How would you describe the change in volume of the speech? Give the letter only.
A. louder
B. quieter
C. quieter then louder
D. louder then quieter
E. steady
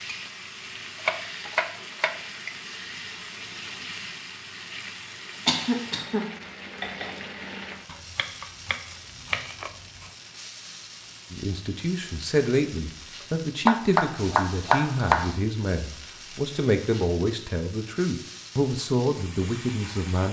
E.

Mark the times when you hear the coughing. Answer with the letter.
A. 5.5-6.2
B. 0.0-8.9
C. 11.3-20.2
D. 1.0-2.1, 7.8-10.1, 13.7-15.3
A.